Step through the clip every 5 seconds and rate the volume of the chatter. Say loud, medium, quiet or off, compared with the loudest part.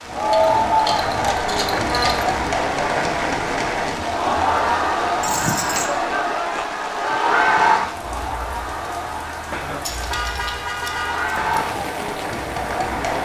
loud, loud, medium.